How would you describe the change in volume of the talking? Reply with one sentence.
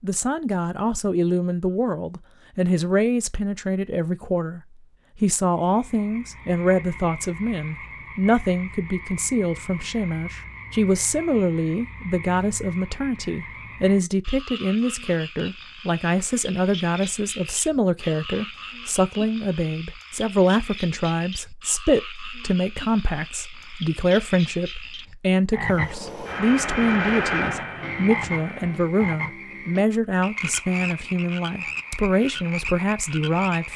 The volume of the talking stays about the same.